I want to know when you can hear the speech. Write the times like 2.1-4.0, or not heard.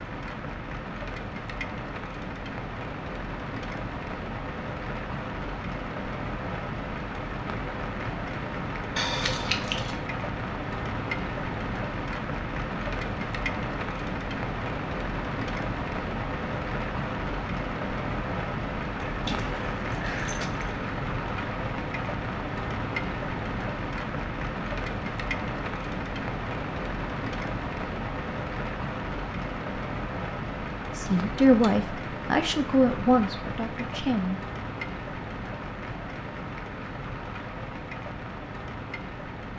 30.9-34.4.